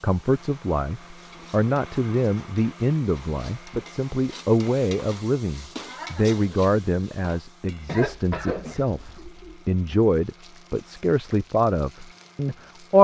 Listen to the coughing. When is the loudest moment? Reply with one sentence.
The loudest moment of the coughing is at 8 seconds.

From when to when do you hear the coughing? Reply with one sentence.
You can hear the coughing from 7.8 to 9.6 s.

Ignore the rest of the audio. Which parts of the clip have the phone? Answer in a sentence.
You can't hear the phone here.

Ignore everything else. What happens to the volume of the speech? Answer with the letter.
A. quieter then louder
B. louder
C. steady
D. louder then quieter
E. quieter
C.